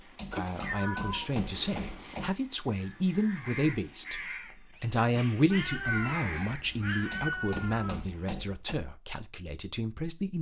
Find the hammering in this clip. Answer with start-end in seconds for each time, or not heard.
0.1-2.4, 7.1-8.8.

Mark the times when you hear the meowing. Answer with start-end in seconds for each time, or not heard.
0.3-2.3, 5.5-8.1.